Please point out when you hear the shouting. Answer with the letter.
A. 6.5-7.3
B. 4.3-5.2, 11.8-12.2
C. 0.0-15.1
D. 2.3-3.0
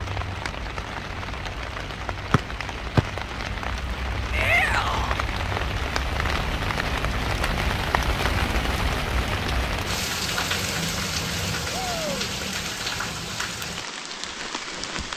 B.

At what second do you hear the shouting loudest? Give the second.
5 s.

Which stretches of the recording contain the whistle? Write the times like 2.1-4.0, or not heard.
2.3-3.0.